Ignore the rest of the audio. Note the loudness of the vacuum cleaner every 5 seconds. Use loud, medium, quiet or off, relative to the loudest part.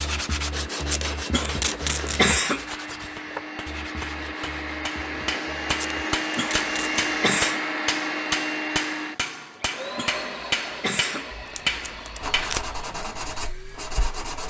medium, loud, medium.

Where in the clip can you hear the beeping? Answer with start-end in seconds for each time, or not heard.
not heard.